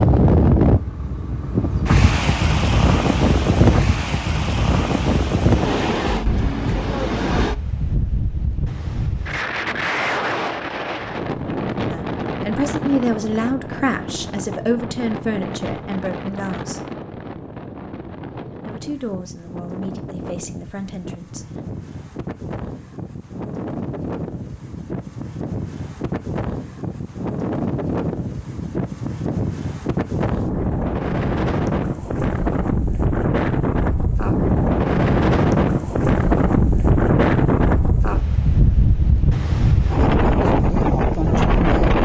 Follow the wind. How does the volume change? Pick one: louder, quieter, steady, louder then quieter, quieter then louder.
quieter then louder.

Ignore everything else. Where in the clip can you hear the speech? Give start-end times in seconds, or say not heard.
11.9-16.8, 18.6-21.4.